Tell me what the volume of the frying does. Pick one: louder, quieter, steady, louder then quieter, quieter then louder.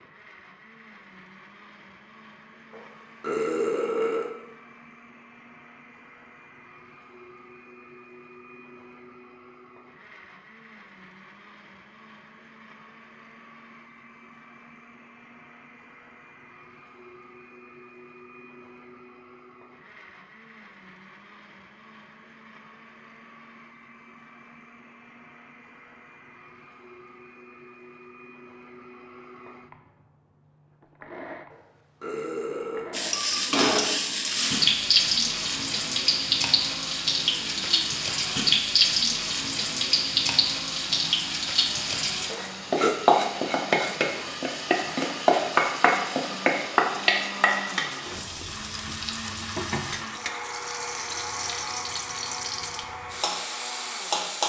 quieter.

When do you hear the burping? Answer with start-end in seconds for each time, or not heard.
2.7-4.3, 31.5-32.9, 42.3-43.0.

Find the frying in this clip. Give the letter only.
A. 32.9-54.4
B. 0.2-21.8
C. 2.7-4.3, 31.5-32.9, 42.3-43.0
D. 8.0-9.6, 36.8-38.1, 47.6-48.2
A.